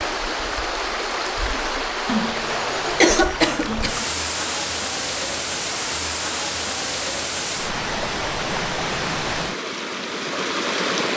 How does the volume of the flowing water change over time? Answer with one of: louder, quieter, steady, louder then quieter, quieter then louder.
steady.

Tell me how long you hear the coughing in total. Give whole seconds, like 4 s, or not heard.
2 s.